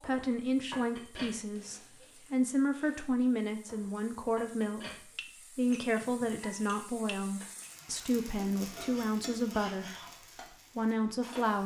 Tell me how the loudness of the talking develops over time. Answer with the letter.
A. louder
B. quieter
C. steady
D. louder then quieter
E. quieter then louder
C.